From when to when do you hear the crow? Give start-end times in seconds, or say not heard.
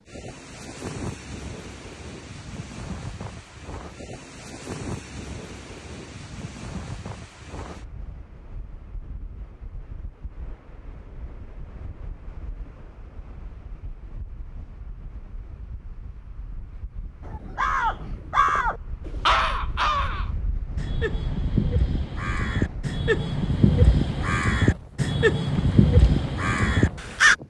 17.3-27.4.